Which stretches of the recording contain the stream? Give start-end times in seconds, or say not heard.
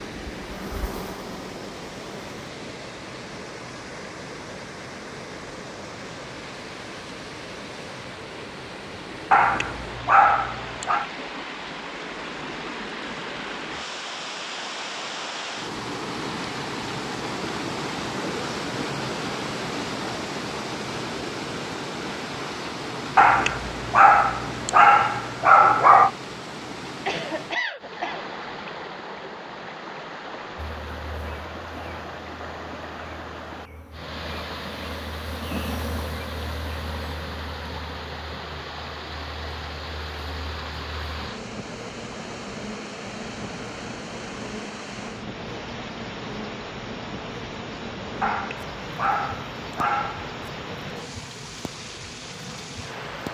0.0-53.2.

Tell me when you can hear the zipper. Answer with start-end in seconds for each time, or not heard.
not heard.